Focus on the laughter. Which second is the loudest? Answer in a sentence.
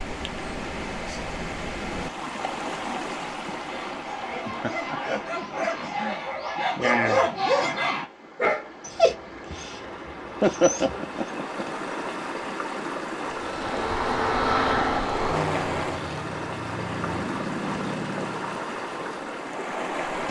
The loudest moment of the laughter is at 11 seconds.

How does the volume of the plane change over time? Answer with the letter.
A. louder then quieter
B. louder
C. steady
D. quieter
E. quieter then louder
D.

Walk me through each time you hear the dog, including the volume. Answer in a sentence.
The dog can be heard from 3.6 to 11.2 s, getting louder then quieter.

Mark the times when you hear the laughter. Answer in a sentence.
The laughter can be heard from 4.5 to 6.2 s and from 10.4 to 11.4 s.